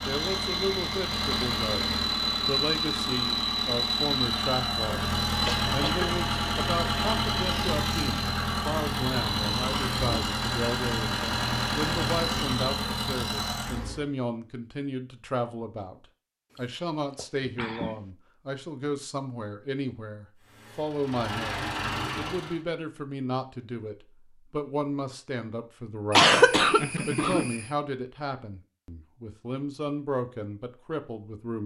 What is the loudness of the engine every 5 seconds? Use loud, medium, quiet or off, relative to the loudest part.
loud, loud, loud, off, medium, off, off.